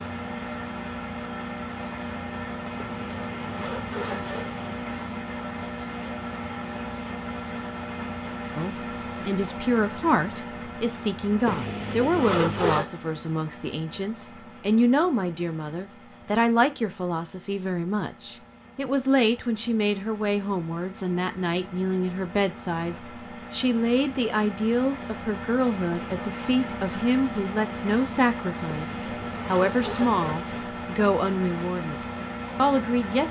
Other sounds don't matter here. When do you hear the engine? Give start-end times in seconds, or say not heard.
0.0-33.2.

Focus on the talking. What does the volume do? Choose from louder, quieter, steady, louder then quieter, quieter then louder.
steady.